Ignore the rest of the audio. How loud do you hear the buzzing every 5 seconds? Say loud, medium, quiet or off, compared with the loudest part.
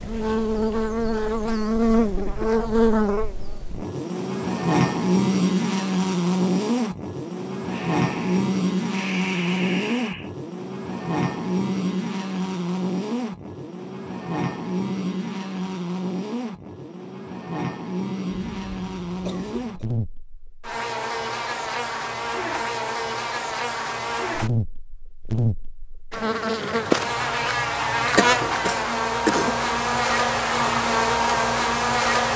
loud, loud, medium, medium, medium, loud, loud.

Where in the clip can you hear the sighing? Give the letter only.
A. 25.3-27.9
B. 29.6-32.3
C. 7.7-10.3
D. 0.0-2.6
C.